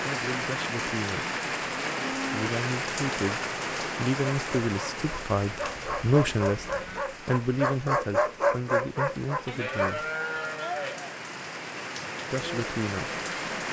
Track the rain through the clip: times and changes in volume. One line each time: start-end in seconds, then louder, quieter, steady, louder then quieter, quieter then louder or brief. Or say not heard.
0.0-13.6 quieter then louder.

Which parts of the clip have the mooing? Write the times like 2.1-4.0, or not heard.
1.6-2.5, 5.5-7.0, 9.4-11.2.